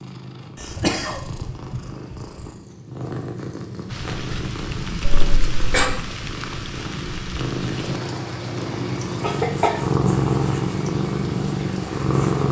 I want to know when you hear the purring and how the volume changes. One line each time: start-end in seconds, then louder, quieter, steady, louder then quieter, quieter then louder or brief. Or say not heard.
0.0-12.4 louder.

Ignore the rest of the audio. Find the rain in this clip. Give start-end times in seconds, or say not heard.
3.9-12.4.